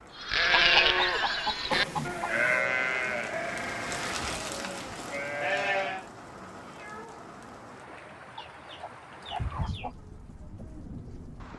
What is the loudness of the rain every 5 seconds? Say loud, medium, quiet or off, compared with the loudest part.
loud, medium, medium.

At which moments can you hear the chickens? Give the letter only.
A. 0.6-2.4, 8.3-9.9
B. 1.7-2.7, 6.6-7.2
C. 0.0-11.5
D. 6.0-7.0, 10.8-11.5
A.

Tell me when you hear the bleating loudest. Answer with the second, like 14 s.
1 s.